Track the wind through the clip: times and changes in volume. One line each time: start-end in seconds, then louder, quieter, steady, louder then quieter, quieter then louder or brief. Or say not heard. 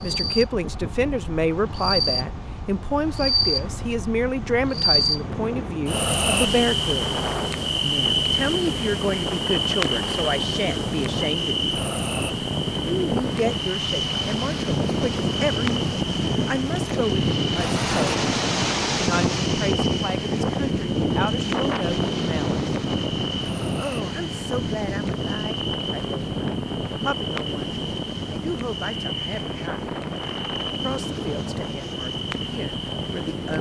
0.0-33.5 louder then quieter.